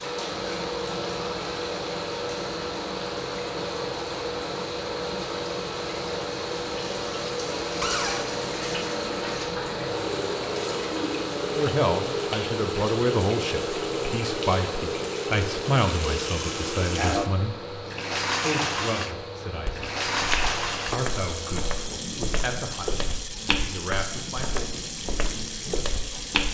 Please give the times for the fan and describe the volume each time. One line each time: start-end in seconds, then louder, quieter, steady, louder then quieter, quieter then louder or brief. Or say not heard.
0.0-26.4 quieter.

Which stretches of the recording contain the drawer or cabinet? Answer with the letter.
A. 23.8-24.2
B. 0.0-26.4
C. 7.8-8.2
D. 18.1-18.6
C.